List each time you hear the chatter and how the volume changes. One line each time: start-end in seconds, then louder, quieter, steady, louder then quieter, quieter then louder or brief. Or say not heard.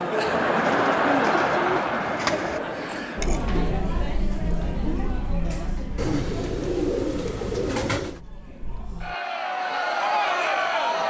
0.0-11.0 quieter then louder.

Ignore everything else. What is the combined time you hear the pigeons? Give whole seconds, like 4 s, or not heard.
4 s.